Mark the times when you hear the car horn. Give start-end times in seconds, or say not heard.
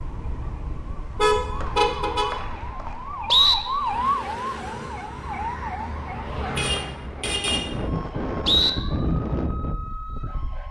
1.1-2.4, 6.5-7.7.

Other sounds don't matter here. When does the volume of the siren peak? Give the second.
4 s.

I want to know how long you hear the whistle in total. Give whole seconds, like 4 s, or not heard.
4 s.